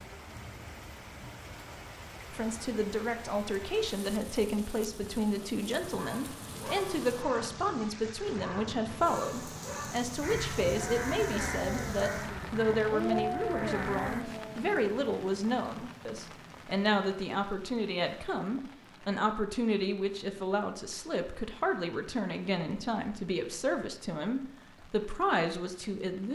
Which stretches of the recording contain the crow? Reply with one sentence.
You can hear the crow from 10.2 to 14.2 s.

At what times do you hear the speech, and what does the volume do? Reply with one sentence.
The speech can be heard from 2.3 to 26.3 s, at a steady volume.